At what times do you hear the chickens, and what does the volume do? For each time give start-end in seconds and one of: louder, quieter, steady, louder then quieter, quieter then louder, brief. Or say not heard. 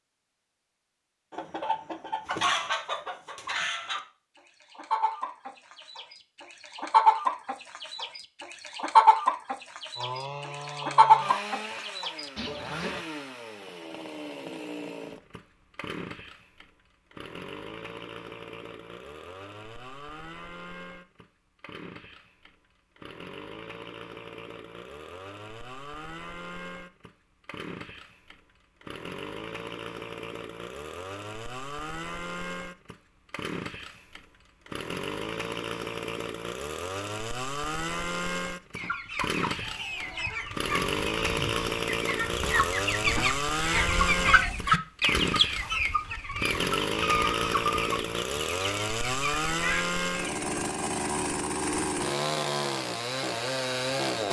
1.3-13.0 louder
38.8-50.5 louder then quieter.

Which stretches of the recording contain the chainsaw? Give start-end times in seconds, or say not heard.
9.9-54.2.